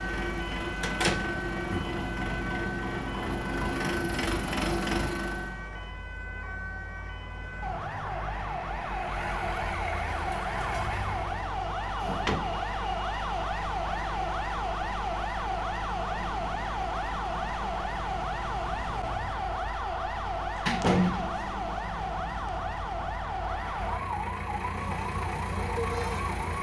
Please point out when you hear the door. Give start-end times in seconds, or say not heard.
0.8-1.9, 12.0-12.6, 20.1-21.5.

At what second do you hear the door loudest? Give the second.
21 s.